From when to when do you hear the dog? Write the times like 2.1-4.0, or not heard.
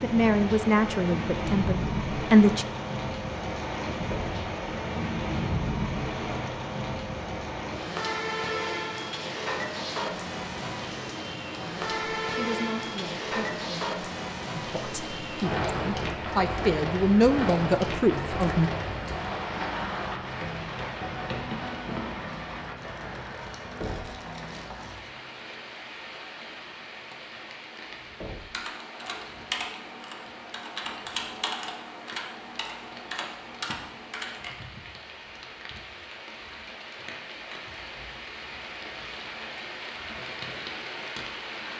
not heard.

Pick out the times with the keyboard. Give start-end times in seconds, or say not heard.
28.5-34.5.